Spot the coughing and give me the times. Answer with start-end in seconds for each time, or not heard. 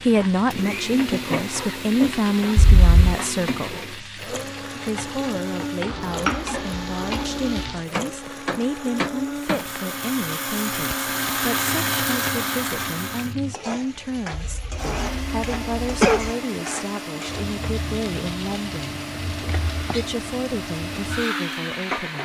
2.5-3.1, 14.3-16.3.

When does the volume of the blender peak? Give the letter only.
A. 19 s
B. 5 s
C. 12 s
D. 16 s
C.